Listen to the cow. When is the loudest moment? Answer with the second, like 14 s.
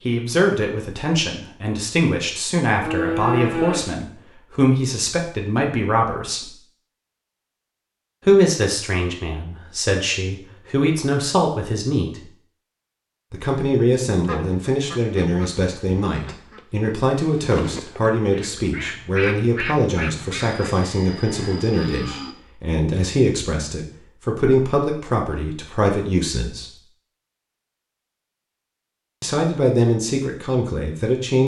3 s.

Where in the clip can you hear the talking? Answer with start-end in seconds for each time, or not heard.
0.0-6.5, 8.2-12.2, 13.3-26.8, 29.2-31.4.